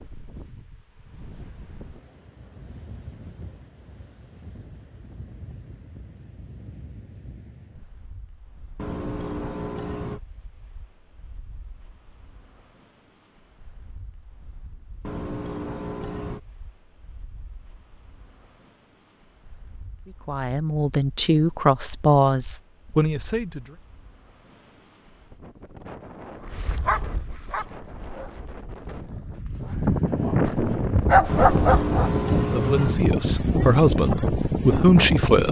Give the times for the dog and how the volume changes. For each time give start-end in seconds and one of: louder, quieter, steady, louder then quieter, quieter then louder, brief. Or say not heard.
26.4-32.1 quieter then louder.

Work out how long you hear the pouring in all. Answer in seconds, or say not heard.
5 s.